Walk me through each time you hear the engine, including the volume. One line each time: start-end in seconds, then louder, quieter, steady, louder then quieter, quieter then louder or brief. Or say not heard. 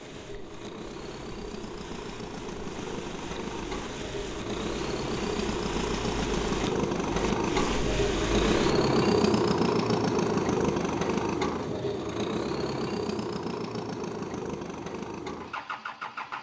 0.0-16.3 louder then quieter.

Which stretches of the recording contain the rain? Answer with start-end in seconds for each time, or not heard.
0.0-8.8.